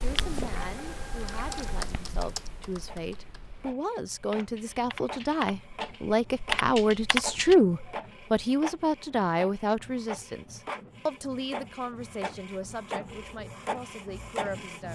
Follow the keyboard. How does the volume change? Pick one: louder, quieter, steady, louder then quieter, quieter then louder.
quieter then louder.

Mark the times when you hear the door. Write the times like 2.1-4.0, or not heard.
not heard.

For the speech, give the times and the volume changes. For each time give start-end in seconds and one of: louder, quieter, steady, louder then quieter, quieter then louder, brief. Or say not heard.
0.0-14.8 louder then quieter.